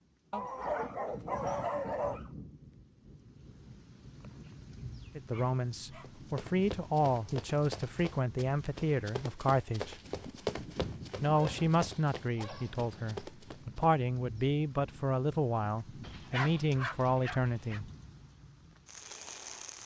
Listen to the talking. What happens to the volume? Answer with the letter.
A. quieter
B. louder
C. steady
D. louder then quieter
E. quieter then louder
C.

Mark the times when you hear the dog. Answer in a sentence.
You can hear the dog from 0.3 to 2.3 s, from 5.3 to 6.1 s, from 11.3 to 13.2 s and from 16.0 to 17.8 s.